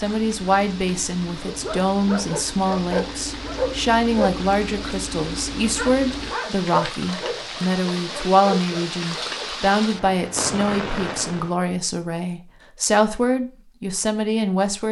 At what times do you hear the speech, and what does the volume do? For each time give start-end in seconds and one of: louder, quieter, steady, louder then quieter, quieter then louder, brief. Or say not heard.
0.0-14.8 steady.